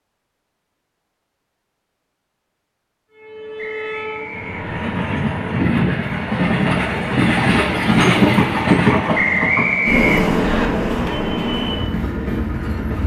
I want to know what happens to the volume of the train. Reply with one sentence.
The volume of the train goes up, then down.